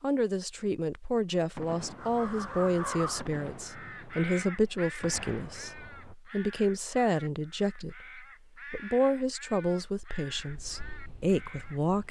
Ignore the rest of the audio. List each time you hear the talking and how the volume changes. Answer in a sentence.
You can hear the talking from 0.0 to 12.0 s, at a steady volume.